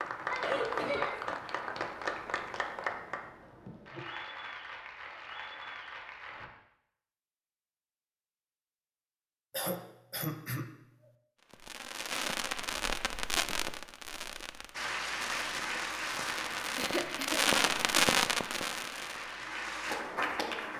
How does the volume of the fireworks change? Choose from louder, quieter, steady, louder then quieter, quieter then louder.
quieter then louder.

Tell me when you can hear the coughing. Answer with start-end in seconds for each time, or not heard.
0.3-1.4, 9.5-10.7, 16.8-17.4.